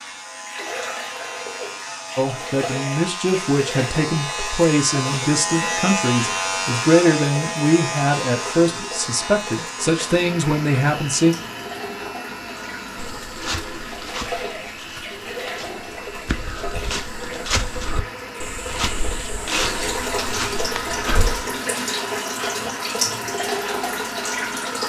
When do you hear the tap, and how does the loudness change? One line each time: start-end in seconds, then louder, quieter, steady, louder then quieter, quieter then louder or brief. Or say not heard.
0.0-24.8 louder.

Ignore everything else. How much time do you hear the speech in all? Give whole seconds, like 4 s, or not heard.
9 s.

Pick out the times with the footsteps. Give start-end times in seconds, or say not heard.
12.9-21.5.